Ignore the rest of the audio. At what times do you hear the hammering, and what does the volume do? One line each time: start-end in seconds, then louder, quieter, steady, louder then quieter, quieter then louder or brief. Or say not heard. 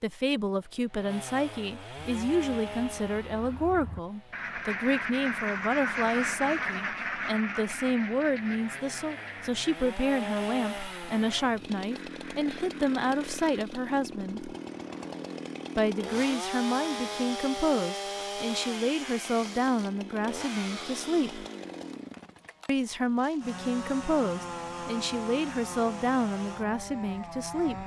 not heard.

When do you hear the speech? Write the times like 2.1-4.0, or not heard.
0.0-14.5, 15.8-21.4, 22.6-27.8.